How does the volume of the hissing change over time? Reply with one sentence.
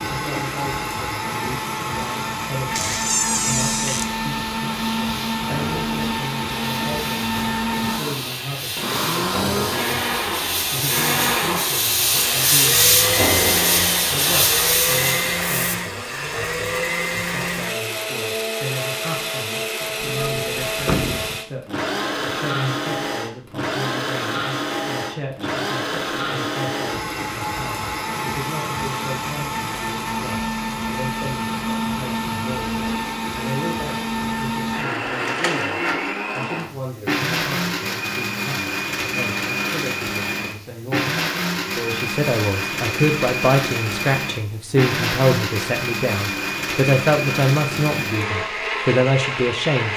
The loudness of the hissing goes up.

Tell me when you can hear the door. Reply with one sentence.
The door can be heard from 2.7 to 4.1 s, from 20.0 to 21.4 s and from 35.2 to 35.8 s.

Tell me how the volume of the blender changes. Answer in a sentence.
The volume of the blender stays about the same.